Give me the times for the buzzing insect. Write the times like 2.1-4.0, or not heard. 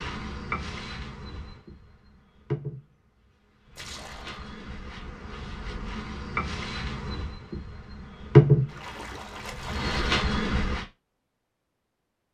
0.0-10.8.